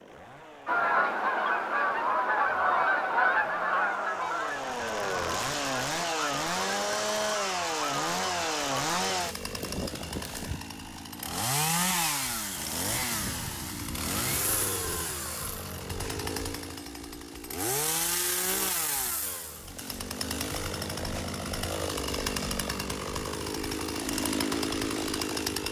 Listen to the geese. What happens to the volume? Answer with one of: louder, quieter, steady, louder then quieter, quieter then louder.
quieter.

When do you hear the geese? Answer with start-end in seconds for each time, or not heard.
0.7-8.9.